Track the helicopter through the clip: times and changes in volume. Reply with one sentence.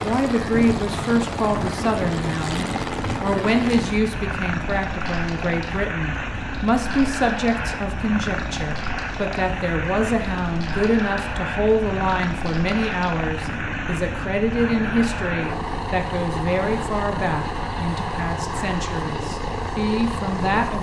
You can hear the helicopter from 0.0 to 20.7 s, at a steady volume.